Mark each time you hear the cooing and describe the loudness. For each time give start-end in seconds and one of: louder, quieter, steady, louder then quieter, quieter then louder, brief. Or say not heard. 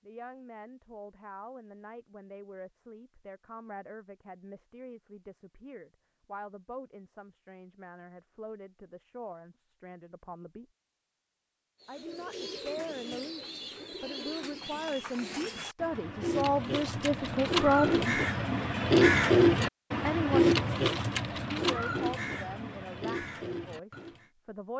11.8-24.3 louder then quieter.